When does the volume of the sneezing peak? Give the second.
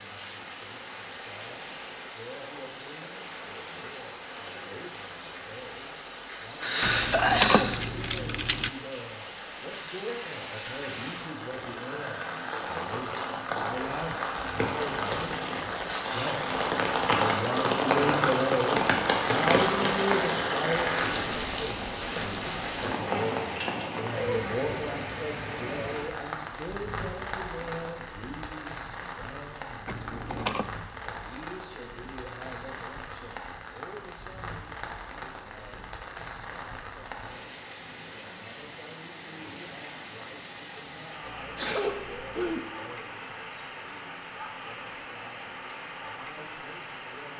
7 s.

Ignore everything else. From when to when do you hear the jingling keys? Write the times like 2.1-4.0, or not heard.
6.8-8.7, 29.9-30.7.